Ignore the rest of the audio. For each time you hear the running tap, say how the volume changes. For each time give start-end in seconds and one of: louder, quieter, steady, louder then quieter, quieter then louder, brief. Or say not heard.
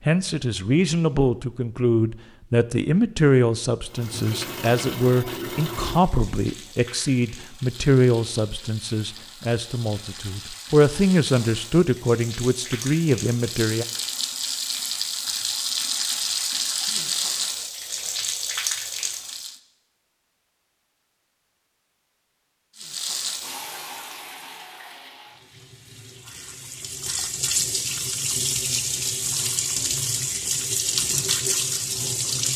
3.9-19.6 quieter then louder
22.8-32.5 quieter then louder.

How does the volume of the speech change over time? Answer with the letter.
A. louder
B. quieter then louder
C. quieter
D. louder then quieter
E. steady
E.